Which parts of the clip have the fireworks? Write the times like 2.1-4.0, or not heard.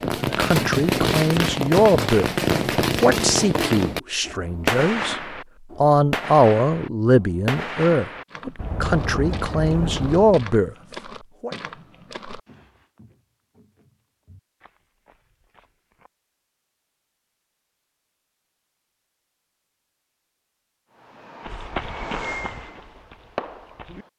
0.0-10.4, 20.9-24.1.